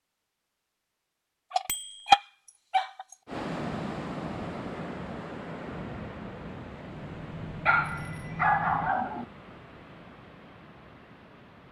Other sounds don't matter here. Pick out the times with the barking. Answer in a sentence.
The barking can be heard from 1.5 to 3.0 s and from 7.7 to 9.2 s.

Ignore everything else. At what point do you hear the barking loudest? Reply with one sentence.
The volume of the barking peaks at 2 seconds.